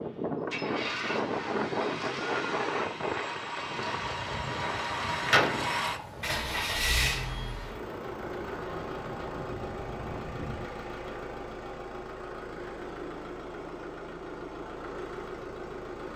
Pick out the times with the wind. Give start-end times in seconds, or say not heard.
0.0-10.7.